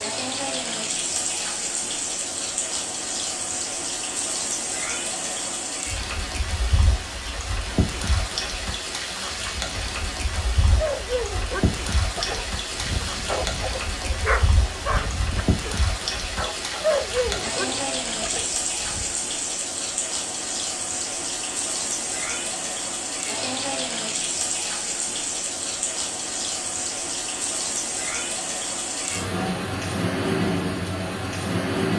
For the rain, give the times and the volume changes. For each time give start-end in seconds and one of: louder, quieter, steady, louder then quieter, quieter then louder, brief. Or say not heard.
0.0-31.9 steady.